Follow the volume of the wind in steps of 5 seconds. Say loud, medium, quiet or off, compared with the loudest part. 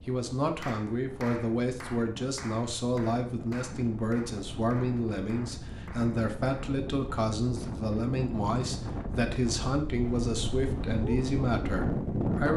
quiet, medium, loud.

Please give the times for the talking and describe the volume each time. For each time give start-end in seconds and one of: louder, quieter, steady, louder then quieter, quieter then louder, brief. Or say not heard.
0.1-12.5 steady.